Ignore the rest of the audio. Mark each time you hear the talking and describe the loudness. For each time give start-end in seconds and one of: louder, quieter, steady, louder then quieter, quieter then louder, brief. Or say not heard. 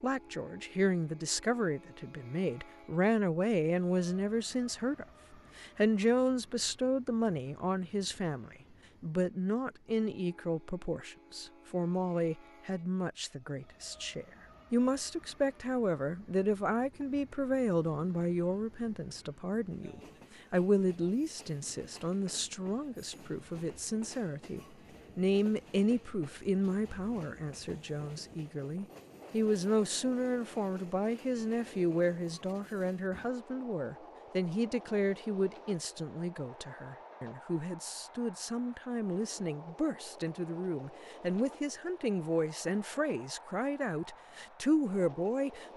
0.0-45.7 steady.